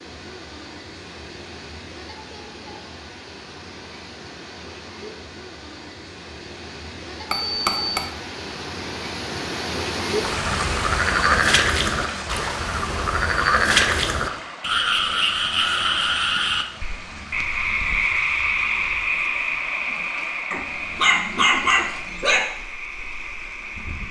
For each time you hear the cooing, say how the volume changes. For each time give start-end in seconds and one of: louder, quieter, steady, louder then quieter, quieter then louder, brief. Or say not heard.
not heard.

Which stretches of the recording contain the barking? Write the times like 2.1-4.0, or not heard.
20.5-22.4.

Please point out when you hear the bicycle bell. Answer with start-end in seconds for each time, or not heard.
7.3-8.1.